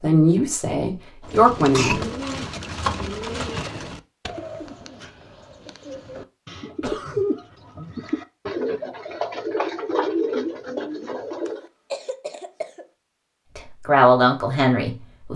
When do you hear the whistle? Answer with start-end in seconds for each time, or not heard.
not heard.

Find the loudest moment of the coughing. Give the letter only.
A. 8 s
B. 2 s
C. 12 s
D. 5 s
B.